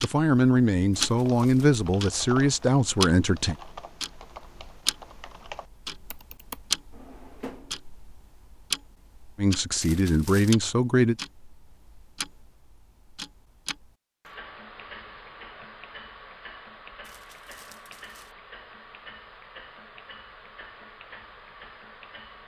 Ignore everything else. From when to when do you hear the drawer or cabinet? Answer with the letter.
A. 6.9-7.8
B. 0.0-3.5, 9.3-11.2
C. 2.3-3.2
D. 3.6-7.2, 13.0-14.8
A.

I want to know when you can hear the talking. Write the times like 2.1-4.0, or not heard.
0.0-3.5, 9.3-11.2.